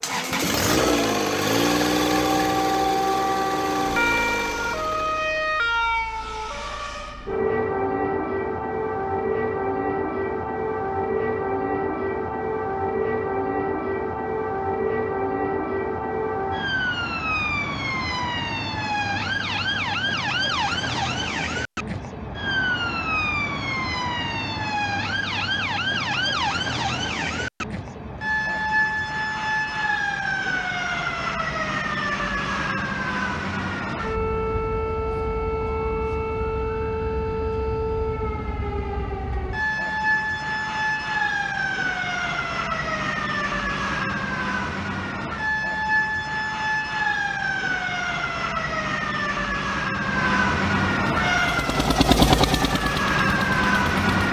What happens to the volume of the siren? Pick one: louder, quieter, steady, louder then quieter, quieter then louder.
steady.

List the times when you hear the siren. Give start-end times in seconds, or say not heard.
0.0-54.2.